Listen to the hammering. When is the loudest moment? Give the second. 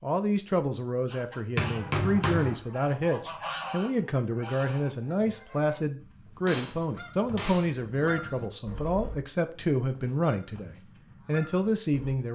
2 s.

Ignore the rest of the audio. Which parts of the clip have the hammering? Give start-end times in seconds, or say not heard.
1.6-2.6, 6.5-7.8.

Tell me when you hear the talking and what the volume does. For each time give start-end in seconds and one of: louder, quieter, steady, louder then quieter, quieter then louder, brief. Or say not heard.
0.0-12.3 steady.